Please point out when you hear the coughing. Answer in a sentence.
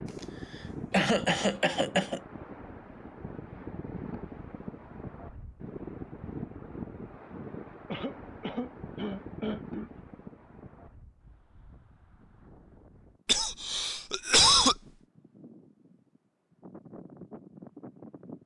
You can hear the coughing from 0.2 to 2.2 s, from 7.8 to 10.0 s and from 13.2 to 14.8 s.